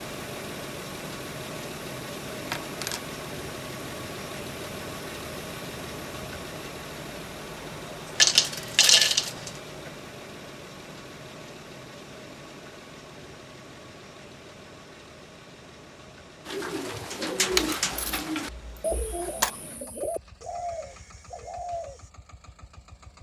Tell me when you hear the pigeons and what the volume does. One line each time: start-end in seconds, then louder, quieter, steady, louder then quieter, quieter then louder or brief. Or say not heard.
16.4-22.1 quieter.